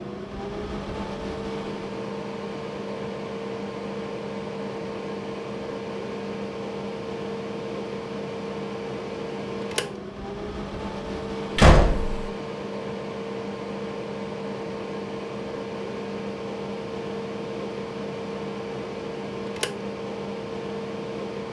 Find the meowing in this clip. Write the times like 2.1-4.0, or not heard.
not heard.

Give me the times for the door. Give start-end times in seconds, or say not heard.
11.6-12.3.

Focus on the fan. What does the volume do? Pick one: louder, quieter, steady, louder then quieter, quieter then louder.
steady.